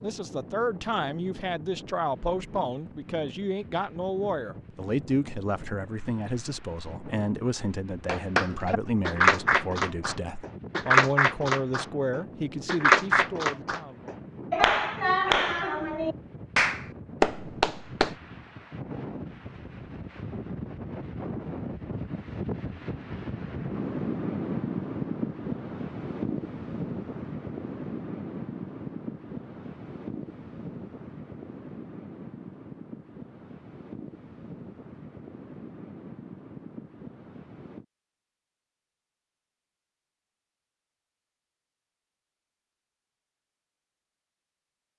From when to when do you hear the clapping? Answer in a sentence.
You can hear the clapping from 8.1 to 18.1 s.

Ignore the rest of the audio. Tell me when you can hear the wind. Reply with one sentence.
You can hear the wind from 0.0 to 37.9 s.